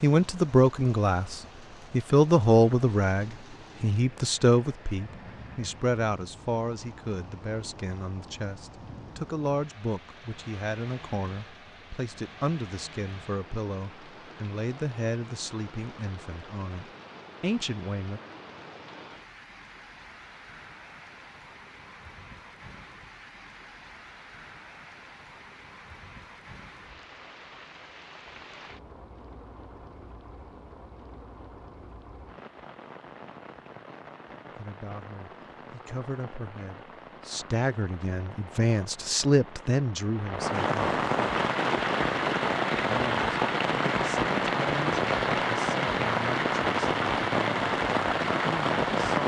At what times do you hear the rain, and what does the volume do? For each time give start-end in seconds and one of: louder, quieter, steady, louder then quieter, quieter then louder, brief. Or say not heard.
0.0-49.2 louder.